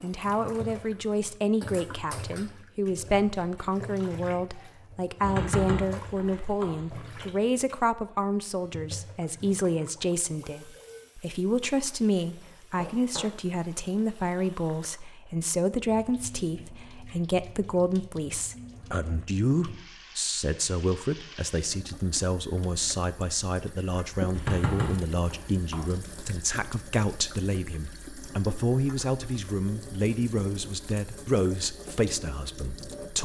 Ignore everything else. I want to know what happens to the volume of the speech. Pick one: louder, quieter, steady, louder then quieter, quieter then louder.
steady.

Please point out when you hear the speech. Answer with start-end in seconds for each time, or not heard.
0.0-33.2.